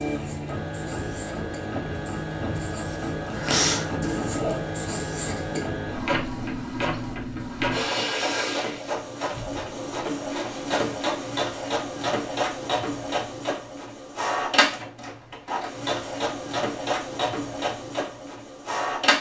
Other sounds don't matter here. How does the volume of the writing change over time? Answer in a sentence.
The loudness of the writing goes up, then down.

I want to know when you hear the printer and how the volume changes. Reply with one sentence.
The printer can be heard from 0.0 to 19.1 s, at a steady volume.